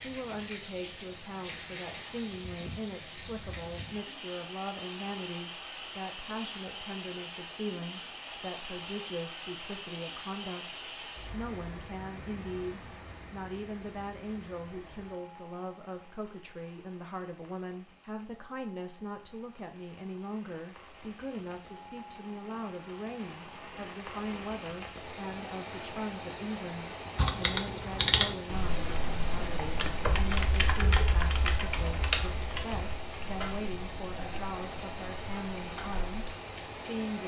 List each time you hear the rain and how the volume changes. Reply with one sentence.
You can hear the rain from 0.0 to 37.2 s, getting quieter then louder.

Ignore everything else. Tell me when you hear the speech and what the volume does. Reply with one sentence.
You can hear the speech from 0.0 to 37.2 s, at a steady volume.